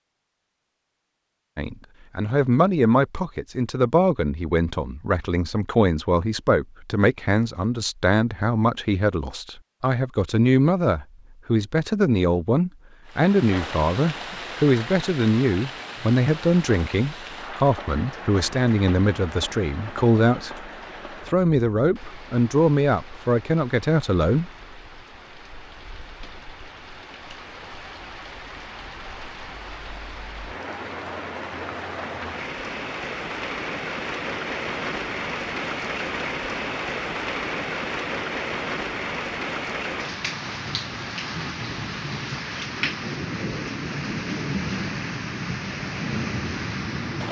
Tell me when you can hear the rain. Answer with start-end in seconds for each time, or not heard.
13.1-47.2.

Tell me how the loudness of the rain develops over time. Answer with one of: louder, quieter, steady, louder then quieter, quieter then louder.
quieter then louder.